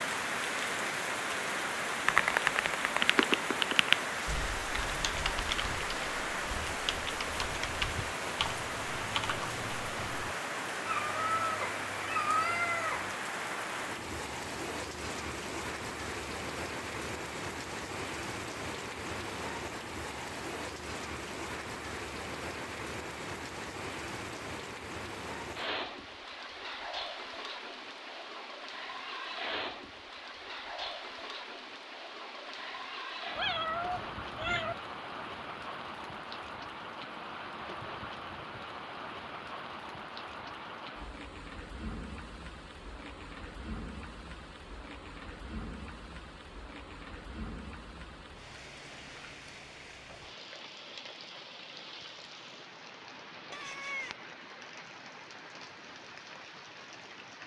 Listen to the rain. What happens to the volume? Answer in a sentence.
The volume of the rain goes down.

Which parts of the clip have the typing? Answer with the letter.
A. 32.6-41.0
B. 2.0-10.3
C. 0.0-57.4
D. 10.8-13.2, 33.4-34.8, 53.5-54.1
B.